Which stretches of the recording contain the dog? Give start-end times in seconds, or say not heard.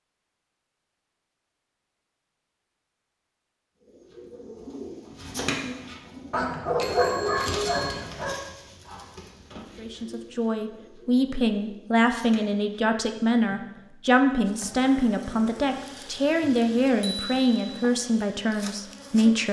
6.3-8.3.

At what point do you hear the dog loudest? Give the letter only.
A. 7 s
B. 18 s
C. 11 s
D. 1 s
A.